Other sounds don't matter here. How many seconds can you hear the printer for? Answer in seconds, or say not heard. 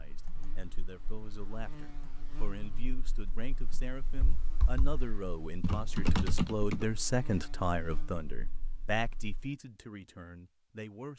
not heard.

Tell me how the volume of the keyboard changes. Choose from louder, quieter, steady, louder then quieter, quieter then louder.
louder.